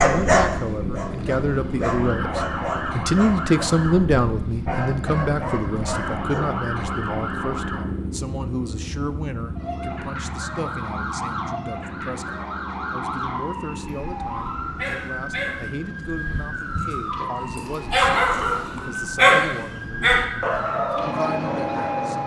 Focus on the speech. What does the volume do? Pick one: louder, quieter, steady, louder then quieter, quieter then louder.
quieter.